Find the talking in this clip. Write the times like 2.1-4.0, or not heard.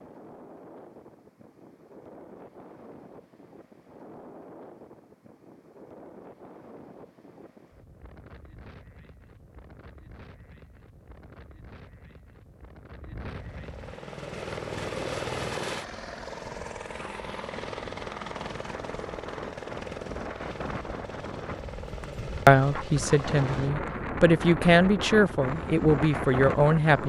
22.4-27.0.